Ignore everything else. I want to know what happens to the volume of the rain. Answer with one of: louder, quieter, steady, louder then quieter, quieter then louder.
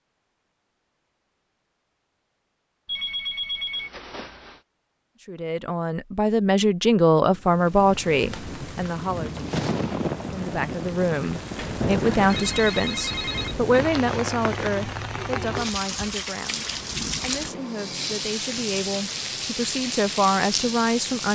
steady.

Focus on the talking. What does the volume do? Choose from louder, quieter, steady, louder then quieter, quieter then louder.
quieter then louder.